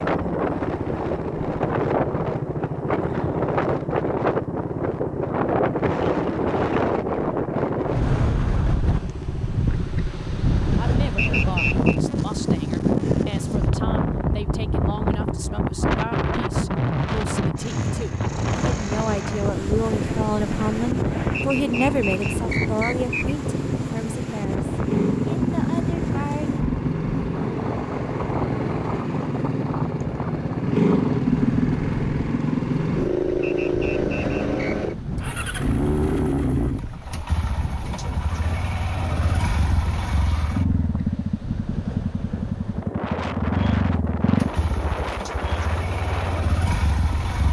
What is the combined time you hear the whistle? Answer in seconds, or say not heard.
4 s.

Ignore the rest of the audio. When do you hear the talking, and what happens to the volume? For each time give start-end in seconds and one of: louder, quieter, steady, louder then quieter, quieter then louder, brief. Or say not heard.
10.8-26.6 louder then quieter.